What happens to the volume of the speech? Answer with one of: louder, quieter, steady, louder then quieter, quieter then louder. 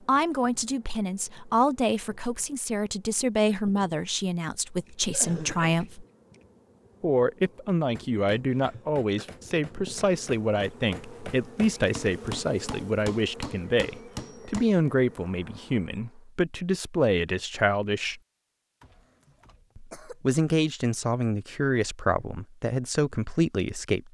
steady.